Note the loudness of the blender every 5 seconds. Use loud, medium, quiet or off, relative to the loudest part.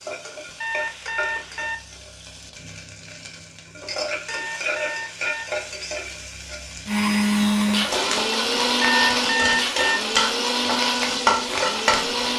off, loud, loud.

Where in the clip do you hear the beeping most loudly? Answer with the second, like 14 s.
9 s.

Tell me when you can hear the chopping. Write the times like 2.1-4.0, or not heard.
not heard.